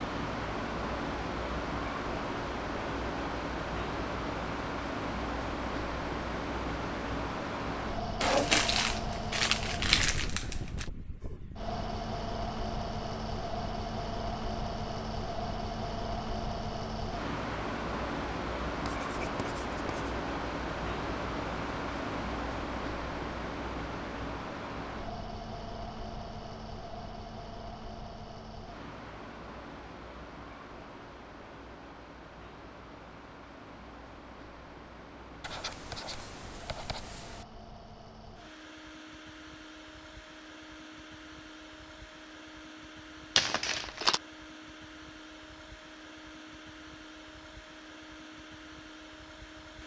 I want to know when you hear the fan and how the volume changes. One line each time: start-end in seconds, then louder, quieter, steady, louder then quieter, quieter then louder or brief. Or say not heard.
0.0-49.8 quieter.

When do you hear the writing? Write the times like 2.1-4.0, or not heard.
18.9-19.9, 35.4-37.5.